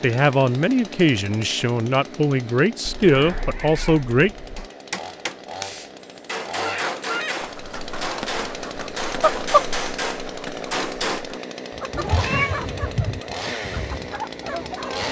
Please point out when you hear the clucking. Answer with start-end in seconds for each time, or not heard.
6.5-15.0.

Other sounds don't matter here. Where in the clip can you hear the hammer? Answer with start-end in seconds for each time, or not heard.
4.5-11.2.